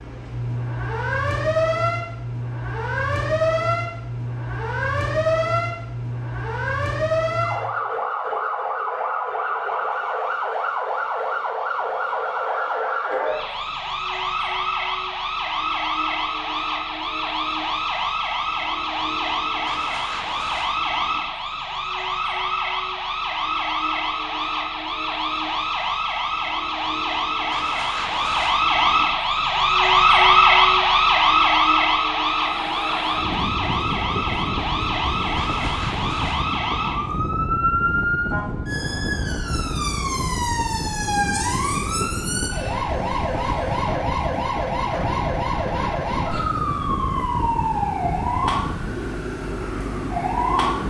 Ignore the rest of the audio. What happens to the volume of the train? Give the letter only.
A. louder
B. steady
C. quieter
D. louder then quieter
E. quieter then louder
B.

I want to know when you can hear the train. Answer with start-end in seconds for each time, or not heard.
32.3-50.8.